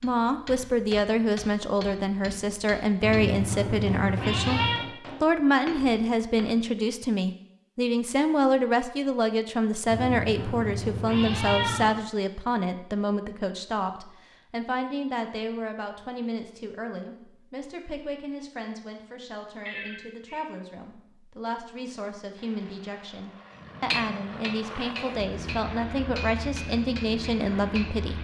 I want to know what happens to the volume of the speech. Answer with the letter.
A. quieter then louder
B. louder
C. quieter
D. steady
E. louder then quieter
A.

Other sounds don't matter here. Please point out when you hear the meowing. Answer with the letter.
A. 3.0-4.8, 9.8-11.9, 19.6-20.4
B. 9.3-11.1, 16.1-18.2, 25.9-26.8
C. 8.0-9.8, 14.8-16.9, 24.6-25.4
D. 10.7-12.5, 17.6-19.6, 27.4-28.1
A.